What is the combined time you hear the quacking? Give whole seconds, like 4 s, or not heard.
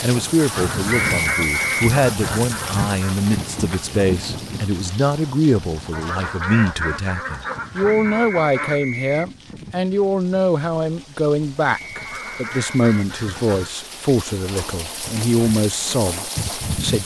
8 s.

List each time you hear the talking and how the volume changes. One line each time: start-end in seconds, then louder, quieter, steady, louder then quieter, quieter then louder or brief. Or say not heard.
0.0-17.0 steady.